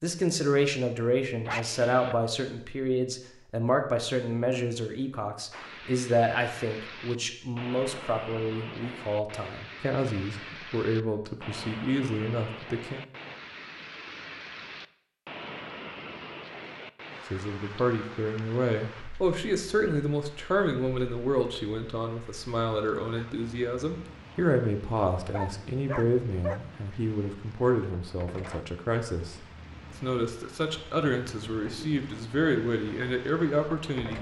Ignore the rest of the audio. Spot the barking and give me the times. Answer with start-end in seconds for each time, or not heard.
1.4-2.1, 25.3-26.6.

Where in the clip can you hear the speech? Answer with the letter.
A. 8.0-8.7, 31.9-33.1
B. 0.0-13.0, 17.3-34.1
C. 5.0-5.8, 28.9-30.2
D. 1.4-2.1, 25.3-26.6
B.